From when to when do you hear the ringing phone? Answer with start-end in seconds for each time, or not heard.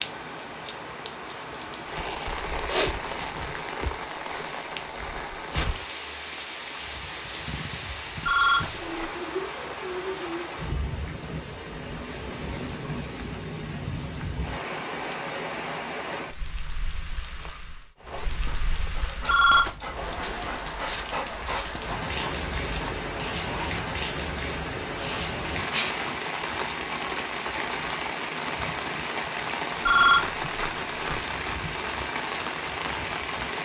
8.2-9.1, 19.2-19.7, 29.9-31.2.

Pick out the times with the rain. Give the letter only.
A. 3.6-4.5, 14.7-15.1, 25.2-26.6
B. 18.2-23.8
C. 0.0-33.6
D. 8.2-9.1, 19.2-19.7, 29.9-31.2
C.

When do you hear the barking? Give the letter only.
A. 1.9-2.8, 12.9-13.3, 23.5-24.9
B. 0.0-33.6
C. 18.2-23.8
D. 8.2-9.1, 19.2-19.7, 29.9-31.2
C.